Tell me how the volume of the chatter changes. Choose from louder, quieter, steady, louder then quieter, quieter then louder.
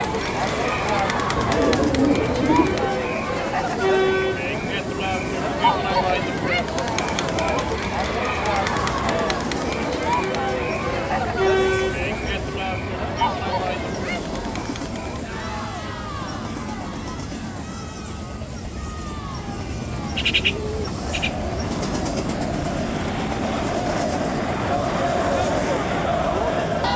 quieter then louder.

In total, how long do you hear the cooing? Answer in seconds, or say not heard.
3 s.